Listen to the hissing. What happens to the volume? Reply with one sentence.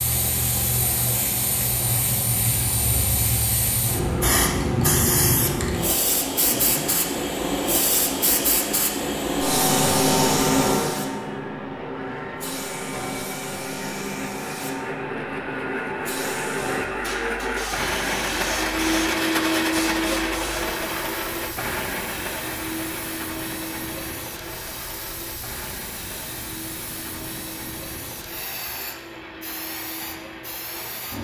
The loudness of the hissing goes down.